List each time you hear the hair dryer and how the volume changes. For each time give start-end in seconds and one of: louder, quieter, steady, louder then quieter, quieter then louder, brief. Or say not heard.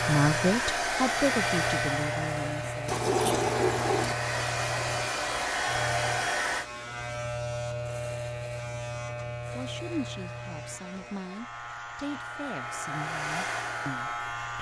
0.0-6.7 quieter then louder
9.8-14.5 louder.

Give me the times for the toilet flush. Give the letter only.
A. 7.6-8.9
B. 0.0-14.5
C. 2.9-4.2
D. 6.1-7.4
C.